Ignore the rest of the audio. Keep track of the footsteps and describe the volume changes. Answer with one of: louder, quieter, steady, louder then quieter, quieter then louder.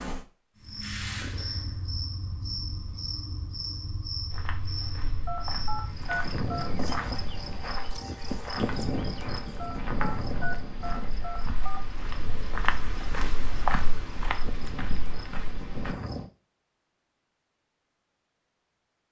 louder.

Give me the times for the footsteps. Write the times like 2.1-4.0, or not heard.
4.3-15.9.